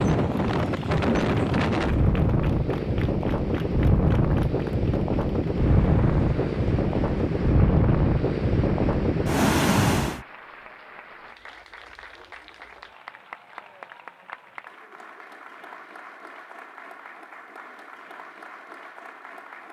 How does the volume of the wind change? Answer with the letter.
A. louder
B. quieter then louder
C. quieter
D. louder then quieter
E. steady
E.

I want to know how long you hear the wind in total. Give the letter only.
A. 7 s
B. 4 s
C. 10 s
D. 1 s
C.